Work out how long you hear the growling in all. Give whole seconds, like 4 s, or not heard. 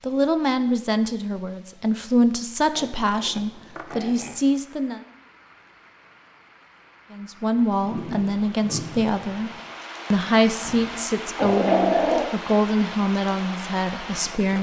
2 s.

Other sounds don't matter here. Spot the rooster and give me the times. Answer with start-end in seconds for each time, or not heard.
not heard.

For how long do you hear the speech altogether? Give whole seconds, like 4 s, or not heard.
12 s.